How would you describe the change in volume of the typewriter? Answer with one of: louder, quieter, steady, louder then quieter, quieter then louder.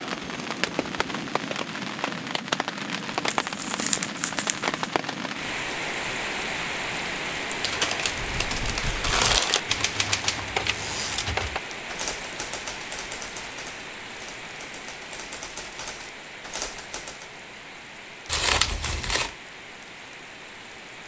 quieter then louder.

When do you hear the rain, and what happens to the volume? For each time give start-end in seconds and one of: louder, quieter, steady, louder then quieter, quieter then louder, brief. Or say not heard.
0.0-21.0 quieter.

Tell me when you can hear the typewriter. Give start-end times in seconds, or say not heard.
8.2-17.3.